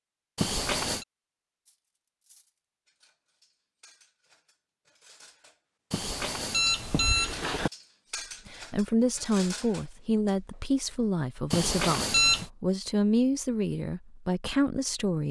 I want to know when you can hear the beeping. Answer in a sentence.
You can hear the beeping from 0.3 to 1.1 s, from 5.9 to 7.7 s and from 11.5 to 12.5 s.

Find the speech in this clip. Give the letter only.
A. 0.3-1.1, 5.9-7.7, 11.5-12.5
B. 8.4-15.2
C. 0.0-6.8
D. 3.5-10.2
B.